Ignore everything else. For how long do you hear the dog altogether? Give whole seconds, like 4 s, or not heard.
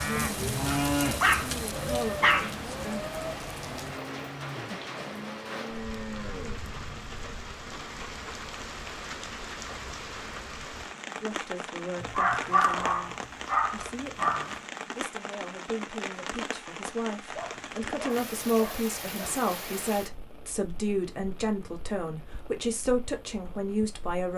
7 s.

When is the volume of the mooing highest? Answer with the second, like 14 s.
1 s.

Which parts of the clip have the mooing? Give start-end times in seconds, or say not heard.
0.0-6.6.